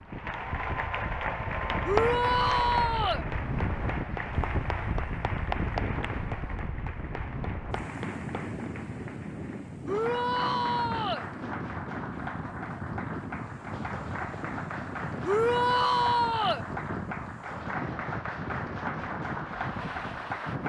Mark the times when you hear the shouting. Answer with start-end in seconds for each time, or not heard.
1.9-3.2, 9.8-11.2, 15.2-16.6.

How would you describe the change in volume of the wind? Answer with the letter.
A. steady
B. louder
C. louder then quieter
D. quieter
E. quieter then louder
A.